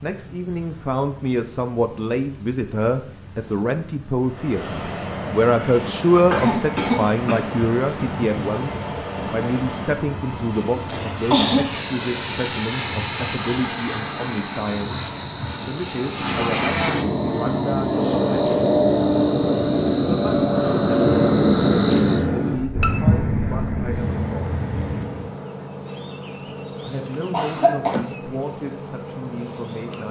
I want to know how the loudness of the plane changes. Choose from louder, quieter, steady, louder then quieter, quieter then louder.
louder.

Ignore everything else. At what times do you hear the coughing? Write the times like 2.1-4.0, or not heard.
6.3-7.4, 10.8-11.7, 27.3-28.0.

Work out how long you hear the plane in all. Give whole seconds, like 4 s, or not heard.
21 s.